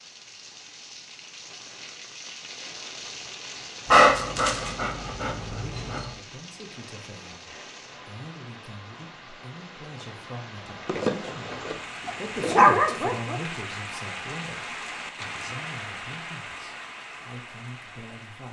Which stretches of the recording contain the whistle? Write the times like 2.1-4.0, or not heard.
not heard.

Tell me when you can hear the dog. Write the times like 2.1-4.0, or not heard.
3.9-6.2, 10.8-13.4.